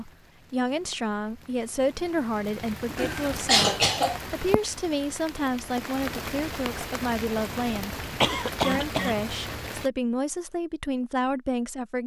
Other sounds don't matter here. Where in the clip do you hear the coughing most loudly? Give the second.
4 s.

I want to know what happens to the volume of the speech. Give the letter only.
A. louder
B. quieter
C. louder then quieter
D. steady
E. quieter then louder
D.